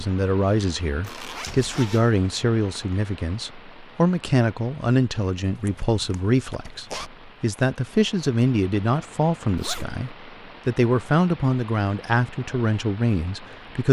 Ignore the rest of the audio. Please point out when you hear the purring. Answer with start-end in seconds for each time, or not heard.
not heard.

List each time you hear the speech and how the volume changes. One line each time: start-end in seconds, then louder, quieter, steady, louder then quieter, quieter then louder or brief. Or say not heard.
0.0-13.8 steady.